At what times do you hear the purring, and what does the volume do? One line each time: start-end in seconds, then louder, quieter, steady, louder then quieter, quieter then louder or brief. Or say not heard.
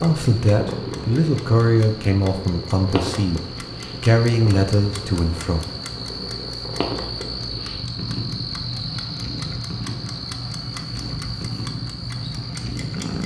0.0-13.2 steady.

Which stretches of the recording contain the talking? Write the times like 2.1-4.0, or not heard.
0.0-5.7.